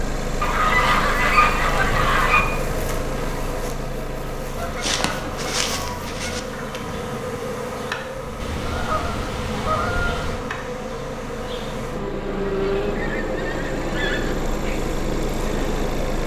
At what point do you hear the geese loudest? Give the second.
1 s.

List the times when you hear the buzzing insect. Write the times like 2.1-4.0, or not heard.
0.0-16.2.